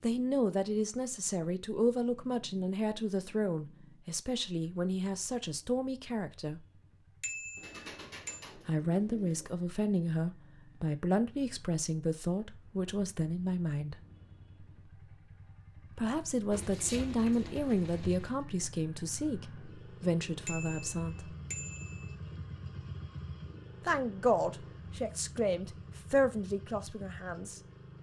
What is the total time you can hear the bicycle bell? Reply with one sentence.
You can hear the bicycle bell for 3 seconds altogether.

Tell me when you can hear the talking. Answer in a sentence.
The talking can be heard from 0.0 to 6.6 s, from 8.7 to 13.9 s, from 15.9 to 21.4 s and from 23.8 to 27.6 s.